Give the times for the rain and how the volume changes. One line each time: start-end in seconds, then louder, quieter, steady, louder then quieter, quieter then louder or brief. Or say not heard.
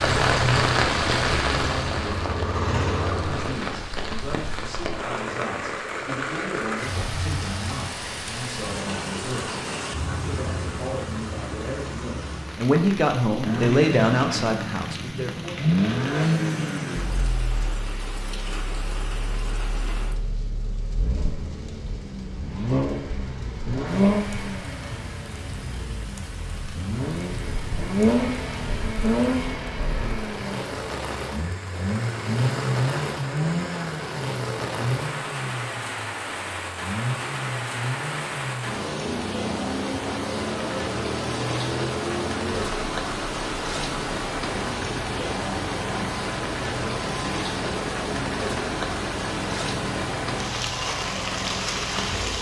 0.0-52.3 quieter then louder.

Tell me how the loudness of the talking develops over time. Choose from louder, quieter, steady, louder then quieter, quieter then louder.
louder.